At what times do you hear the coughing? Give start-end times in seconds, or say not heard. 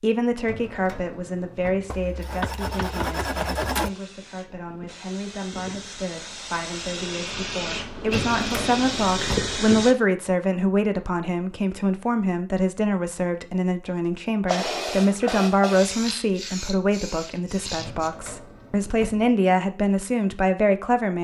not heard.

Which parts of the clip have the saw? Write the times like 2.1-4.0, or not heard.
1.9-3.9.